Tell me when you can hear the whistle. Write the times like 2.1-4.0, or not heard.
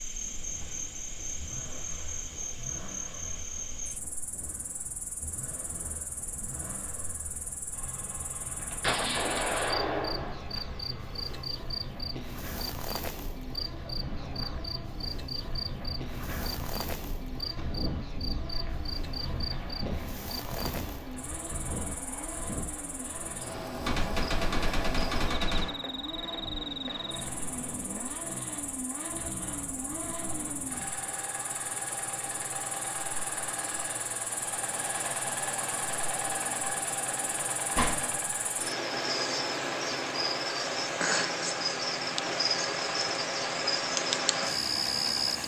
not heard.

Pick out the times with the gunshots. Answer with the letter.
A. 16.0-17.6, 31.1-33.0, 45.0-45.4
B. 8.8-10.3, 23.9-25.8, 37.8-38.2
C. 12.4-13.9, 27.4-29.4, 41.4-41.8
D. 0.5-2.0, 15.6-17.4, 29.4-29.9
B.